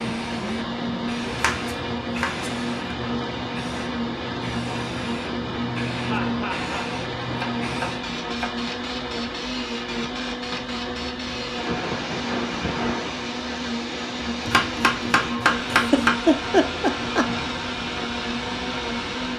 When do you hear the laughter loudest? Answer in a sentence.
The volume of the laughter peaks at 16 seconds.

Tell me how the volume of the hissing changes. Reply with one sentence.
The loudness of the hissing stays about the same.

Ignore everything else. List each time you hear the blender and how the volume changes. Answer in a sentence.
The blender can be heard from 0.0 to 19.3 s, at a steady volume.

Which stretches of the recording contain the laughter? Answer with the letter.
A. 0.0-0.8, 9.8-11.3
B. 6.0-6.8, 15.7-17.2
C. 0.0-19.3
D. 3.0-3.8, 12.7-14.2
B.